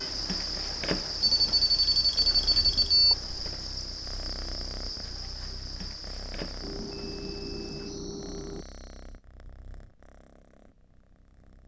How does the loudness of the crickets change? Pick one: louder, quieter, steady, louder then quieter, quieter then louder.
quieter.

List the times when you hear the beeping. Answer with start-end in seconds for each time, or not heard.
1.2-3.1, 6.6-8.7.